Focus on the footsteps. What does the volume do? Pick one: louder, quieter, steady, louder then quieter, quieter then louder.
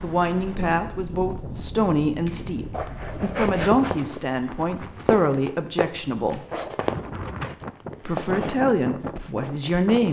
steady.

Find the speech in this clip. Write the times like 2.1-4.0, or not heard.
0.0-6.5, 8.1-10.0.